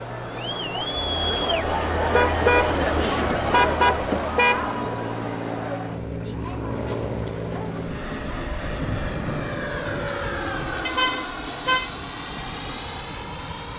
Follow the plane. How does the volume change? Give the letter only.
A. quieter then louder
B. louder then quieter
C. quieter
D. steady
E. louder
E.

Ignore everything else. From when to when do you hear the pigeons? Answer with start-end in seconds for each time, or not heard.
not heard.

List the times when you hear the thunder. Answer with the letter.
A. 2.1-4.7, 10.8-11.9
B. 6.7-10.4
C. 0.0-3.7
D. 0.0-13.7
B.